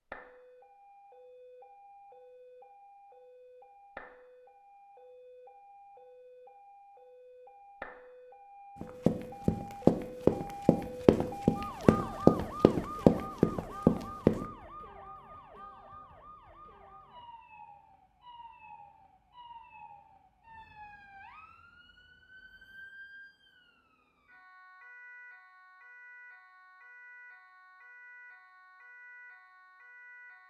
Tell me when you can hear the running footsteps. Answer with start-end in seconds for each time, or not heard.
8.8-14.4.